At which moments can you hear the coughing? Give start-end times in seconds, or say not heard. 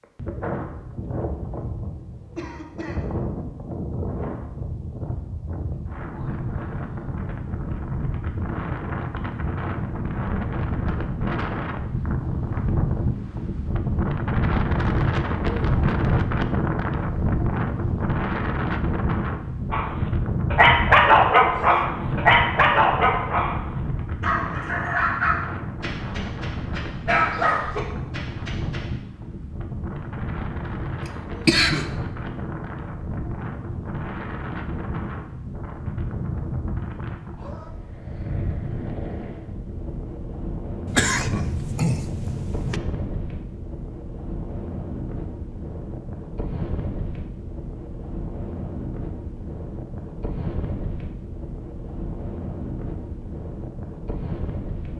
2.4-3.1, 31.4-31.9, 40.9-42.8.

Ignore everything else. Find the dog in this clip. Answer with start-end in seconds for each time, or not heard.
19.7-28.9.